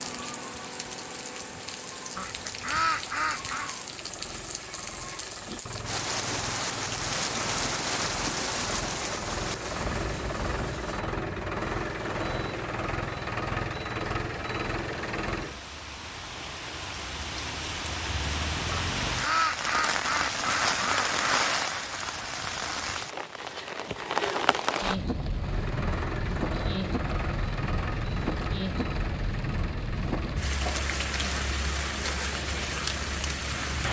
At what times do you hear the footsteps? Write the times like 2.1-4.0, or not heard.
not heard.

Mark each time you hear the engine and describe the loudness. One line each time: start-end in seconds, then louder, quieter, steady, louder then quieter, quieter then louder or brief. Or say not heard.
0.0-15.7 louder
25.4-33.8 quieter.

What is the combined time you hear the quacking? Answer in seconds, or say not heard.
4 s.